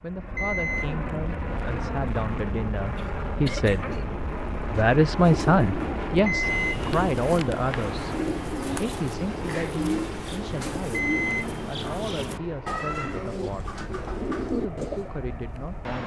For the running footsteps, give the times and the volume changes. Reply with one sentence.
You can't hear the running footsteps here.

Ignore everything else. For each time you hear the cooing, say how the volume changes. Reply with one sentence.
The cooing can be heard from 5.2 to 15.1 s, at a steady volume.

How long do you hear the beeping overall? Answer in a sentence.
The beeping can be heard for 2 seconds in total.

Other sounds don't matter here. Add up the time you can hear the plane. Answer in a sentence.
You can hear the plane for 16 seconds altogether.